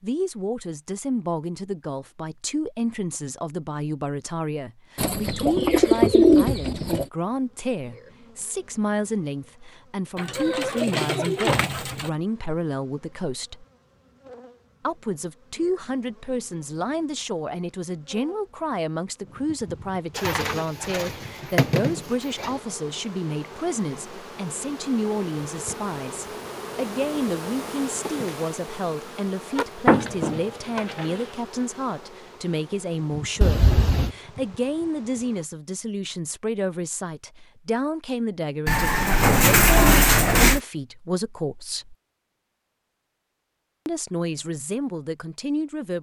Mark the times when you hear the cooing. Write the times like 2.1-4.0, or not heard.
5.0-7.0, 10.2-12.1, 20.1-22.6, 29.9-31.1, 38.6-40.6.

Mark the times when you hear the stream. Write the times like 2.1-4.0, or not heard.
not heard.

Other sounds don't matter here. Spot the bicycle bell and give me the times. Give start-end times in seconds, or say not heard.
33.4-34.1.